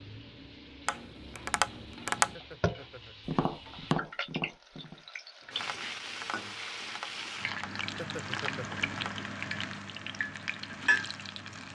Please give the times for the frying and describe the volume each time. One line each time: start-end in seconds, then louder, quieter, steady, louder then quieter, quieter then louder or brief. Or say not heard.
0.0-11.6 louder.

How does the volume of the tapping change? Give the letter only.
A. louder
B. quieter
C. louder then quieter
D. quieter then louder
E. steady
B.